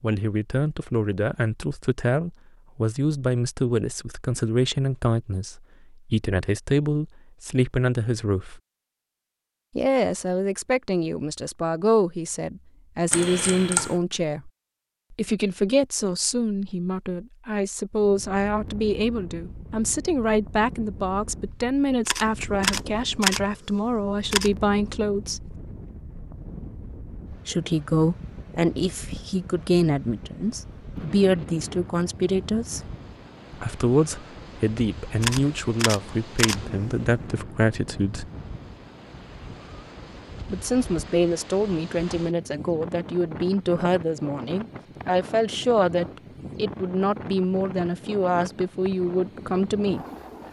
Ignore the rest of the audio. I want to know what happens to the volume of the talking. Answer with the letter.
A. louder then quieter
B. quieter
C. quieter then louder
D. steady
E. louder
D.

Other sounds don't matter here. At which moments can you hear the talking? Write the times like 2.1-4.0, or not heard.
0.0-8.6, 9.8-14.5, 15.1-25.6, 27.4-32.8, 33.5-38.3, 40.5-50.0.